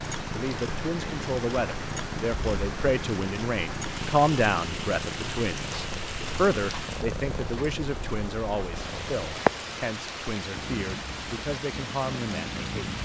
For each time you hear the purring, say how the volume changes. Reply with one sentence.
The purring can be heard from 0.0 to 13.0 s, getting louder then quieter.